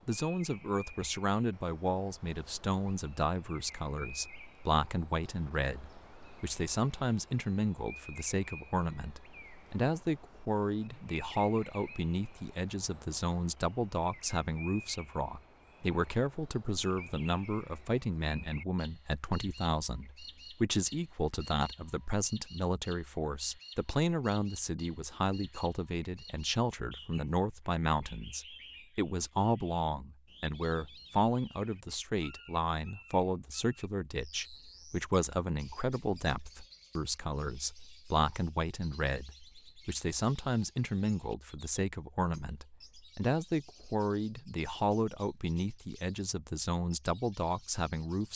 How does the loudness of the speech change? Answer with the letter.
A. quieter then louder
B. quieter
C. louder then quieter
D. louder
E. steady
E.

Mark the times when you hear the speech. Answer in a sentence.
You can hear the speech from 0.1 to 48.3 s.